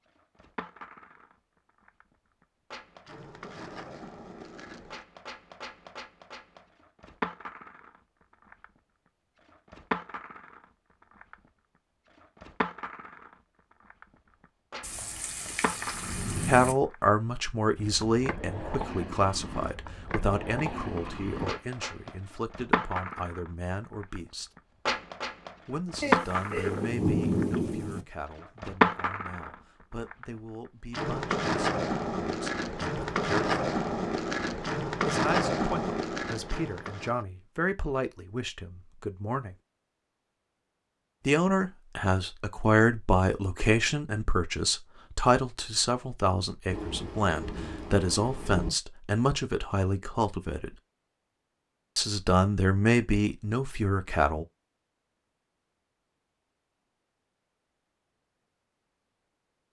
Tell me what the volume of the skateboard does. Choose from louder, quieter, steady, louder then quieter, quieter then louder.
louder.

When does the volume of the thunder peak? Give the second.
27 s.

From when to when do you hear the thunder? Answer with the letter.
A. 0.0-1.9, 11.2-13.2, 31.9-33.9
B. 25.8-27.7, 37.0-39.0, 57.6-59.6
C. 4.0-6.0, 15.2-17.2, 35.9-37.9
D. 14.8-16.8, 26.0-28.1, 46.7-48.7
D.